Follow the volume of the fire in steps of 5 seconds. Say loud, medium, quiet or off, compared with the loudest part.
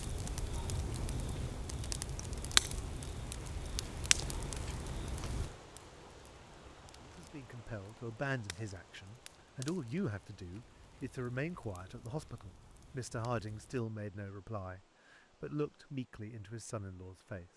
loud, quiet, quiet, off.